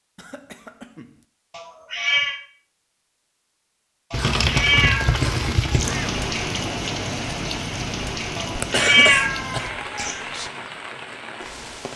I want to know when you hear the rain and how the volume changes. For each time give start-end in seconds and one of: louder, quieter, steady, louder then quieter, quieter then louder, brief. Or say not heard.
4.1-11.9 quieter.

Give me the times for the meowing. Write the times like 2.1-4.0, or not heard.
1.5-2.4, 4.1-6.0, 8.3-10.2.